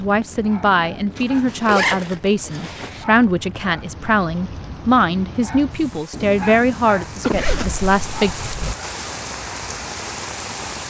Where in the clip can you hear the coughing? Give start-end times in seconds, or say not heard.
7.2-7.7.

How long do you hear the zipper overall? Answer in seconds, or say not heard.
3 s.